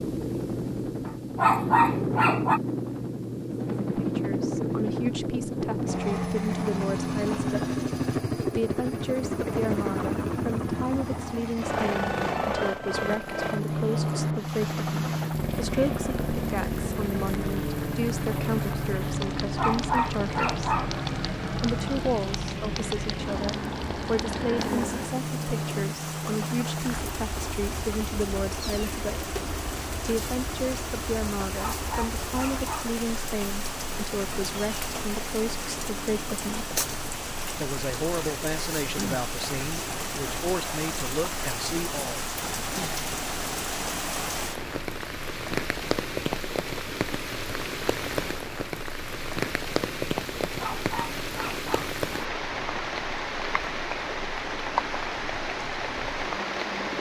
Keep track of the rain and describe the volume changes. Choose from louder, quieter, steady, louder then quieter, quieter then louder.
louder.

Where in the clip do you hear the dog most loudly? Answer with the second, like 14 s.
2 s.